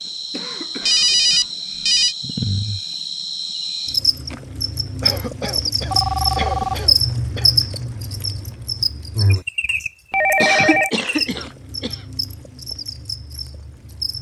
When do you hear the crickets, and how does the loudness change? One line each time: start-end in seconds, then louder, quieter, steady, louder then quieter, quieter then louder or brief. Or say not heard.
0.0-14.1 louder then quieter.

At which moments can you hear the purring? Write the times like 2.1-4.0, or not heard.
not heard.